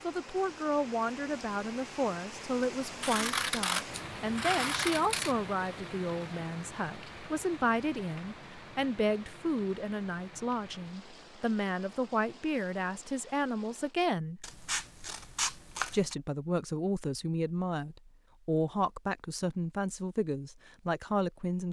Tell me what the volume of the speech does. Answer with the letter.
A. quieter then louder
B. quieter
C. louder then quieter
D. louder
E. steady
E.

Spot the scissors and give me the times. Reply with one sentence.
The scissors can be heard from 3.0 to 5.3 s and from 14.4 to 16.1 s.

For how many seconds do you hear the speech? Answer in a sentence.
You can hear the speech for 20 seconds altogether.